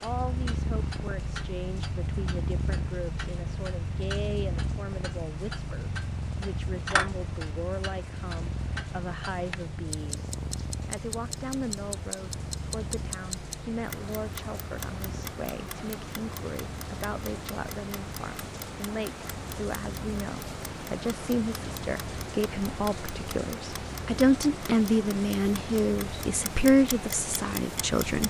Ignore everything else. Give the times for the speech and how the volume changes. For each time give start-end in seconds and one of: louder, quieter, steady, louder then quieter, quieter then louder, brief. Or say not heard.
0.0-28.2 louder.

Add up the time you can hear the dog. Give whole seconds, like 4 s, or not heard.
not heard.